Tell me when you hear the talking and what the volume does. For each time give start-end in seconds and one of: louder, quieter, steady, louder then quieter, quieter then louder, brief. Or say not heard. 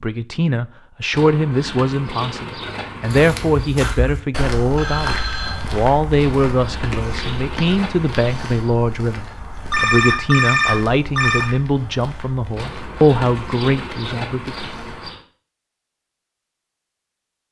0.0-14.7 steady.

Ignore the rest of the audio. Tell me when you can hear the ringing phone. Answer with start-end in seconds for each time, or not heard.
4.8-5.7, 9.7-11.5.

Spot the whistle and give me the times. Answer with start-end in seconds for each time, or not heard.
not heard.